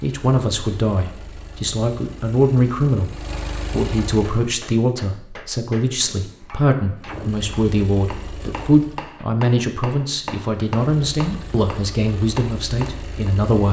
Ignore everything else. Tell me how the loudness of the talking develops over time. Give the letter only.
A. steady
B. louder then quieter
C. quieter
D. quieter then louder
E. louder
A.